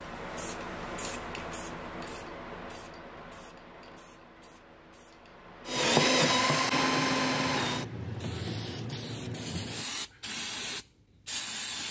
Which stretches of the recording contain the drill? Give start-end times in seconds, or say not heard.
5.7-8.7.